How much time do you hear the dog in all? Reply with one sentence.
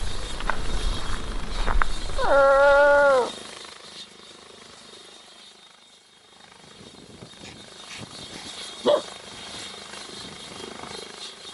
The dog can be heard for 2 seconds in total.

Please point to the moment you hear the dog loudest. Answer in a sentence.
The volume of the dog peaks at 3 seconds.